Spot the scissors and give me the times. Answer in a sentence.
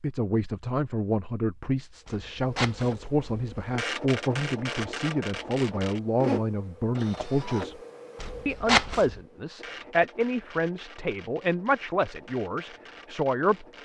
The scissors can be heard from 2.0 to 3.7 s and from 8.2 to 9.1 s.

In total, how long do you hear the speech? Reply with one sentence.
You can hear the speech for 13 seconds altogether.